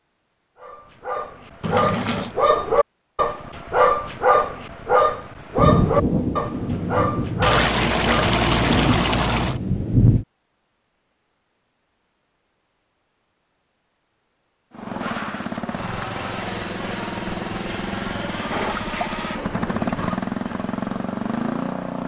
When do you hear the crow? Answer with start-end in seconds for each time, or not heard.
not heard.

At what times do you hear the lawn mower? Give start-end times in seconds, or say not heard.
14.7-22.0.